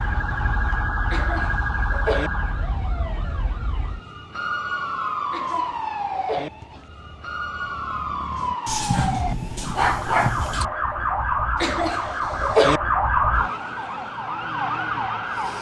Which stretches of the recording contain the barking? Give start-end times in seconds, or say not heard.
8.7-10.7.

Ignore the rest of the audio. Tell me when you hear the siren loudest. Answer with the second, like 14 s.
13 s.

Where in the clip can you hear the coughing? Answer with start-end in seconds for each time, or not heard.
1.1-2.3, 5.3-6.5, 11.6-12.8.